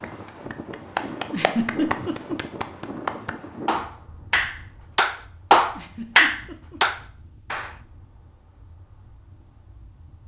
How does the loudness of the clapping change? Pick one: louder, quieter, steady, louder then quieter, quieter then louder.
louder.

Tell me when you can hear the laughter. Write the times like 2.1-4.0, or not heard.
1.3-2.4, 5.8-6.8.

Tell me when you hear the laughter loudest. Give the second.
2 s.